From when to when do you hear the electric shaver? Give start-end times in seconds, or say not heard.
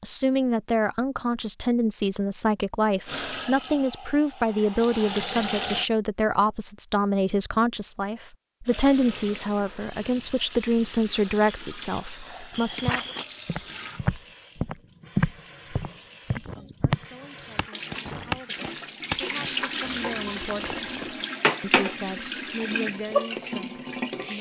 not heard.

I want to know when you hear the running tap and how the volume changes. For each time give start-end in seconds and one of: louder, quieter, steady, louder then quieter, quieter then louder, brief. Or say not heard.
3.0-5.9 brief
8.7-24.3 louder.